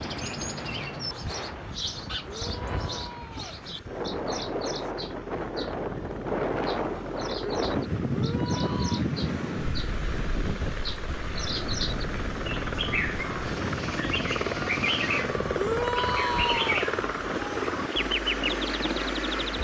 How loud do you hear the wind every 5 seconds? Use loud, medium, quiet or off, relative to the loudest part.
medium, loud, medium, medium.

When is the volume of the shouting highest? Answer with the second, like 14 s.
16 s.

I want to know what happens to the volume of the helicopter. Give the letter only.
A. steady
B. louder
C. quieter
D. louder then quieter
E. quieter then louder
B.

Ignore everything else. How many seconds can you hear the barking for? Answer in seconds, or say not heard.
not heard.